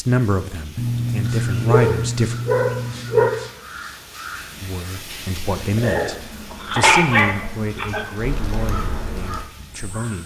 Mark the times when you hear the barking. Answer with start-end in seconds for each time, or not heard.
0.8-3.3, 5.8-8.1.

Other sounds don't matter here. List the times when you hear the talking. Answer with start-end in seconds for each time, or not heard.
0.0-2.4, 4.6-10.2.